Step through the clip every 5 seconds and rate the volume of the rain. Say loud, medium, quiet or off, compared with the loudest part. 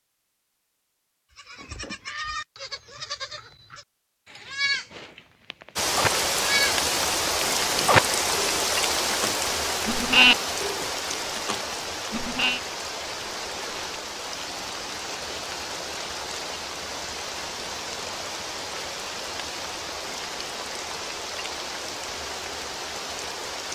off, loud, medium, medium, medium.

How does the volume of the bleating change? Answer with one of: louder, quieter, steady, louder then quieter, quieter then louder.
louder.